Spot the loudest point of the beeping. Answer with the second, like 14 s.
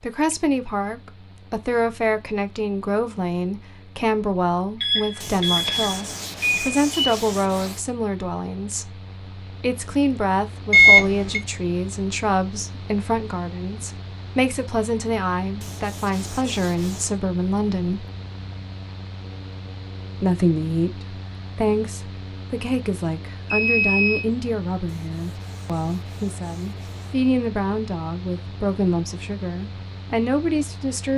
11 s.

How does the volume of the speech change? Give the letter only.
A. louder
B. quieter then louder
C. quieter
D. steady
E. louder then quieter
D.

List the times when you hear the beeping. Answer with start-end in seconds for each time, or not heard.
4.8-7.2, 10.7-11.4, 23.5-24.2.